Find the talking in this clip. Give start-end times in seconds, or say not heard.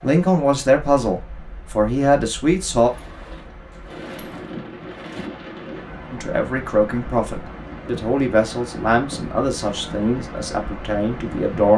0.0-2.9, 6.1-11.7.